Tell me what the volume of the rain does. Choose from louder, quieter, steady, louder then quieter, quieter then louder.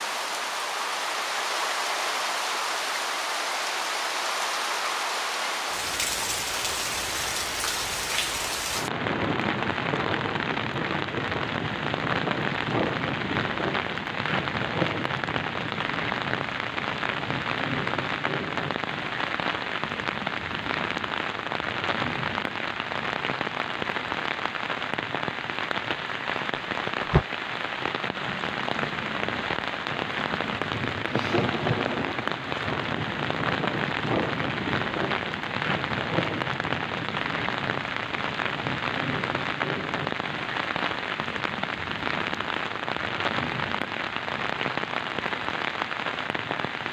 steady.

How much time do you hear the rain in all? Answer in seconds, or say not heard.
47 s.